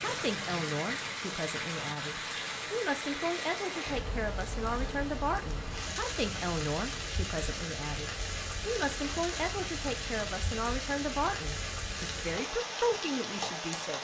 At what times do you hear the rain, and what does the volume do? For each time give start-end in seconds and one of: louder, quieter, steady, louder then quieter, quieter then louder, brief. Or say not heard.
0.0-13.9 steady.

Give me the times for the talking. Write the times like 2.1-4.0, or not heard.
0.0-13.9.